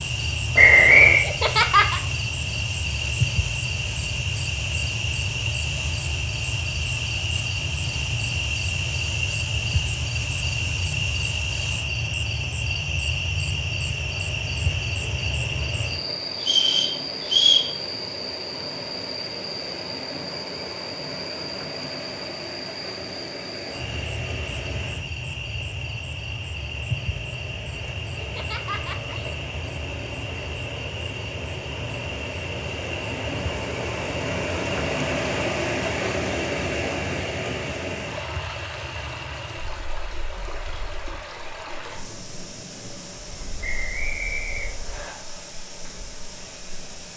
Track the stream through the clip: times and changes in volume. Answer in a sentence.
The stream can be heard from 0.0 to 47.1 s, getting louder then quieter.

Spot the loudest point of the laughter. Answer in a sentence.
The volume of the laughter peaks at 2 seconds.